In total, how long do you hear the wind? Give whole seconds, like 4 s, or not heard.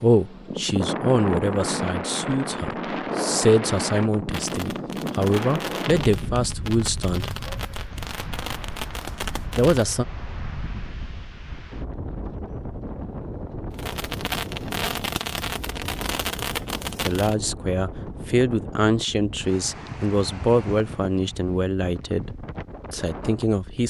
24 s.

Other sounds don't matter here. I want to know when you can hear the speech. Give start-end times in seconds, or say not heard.
0.0-7.3, 9.6-10.1, 17.0-23.8.